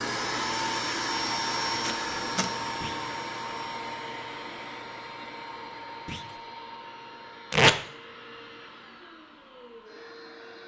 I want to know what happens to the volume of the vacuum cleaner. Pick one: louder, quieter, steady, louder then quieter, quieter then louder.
quieter.